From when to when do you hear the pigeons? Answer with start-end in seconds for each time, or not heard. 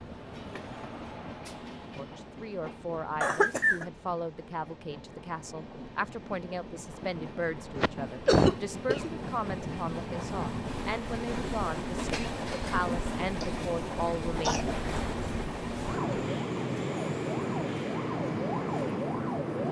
not heard.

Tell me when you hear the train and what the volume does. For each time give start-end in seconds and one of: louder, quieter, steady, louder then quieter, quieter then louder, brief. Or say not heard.
0.0-19.6 louder.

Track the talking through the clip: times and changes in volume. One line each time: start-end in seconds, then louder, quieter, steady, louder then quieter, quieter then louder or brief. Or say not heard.
1.9-14.7 steady.